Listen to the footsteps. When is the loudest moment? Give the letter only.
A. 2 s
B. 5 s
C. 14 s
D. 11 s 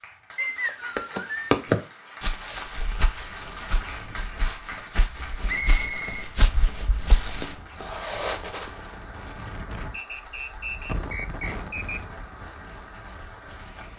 A.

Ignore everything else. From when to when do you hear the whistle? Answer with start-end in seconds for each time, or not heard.
0.3-1.5, 5.5-6.2, 9.9-12.0.